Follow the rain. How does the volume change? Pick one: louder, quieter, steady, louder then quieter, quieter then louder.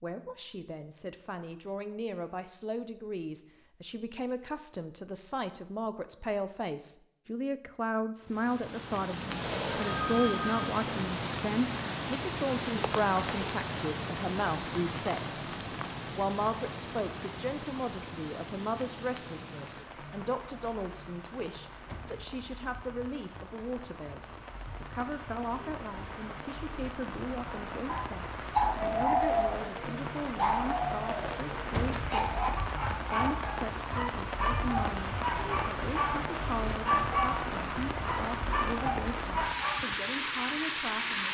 quieter then louder.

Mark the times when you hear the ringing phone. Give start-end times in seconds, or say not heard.
9.2-11.2.